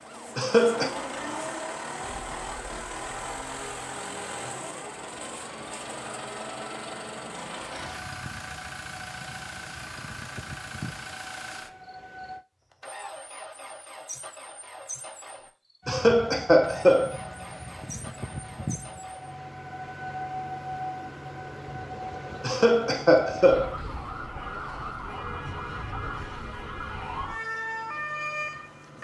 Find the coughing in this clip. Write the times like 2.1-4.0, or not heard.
0.3-0.9, 15.8-17.1, 22.4-23.8.